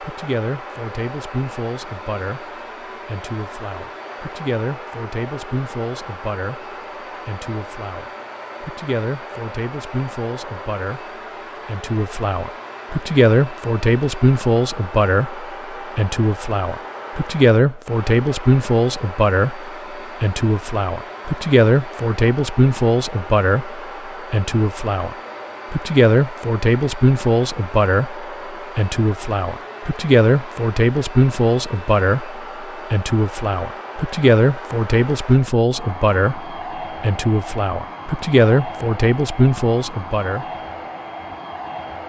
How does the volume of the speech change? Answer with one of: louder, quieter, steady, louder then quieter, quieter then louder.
louder.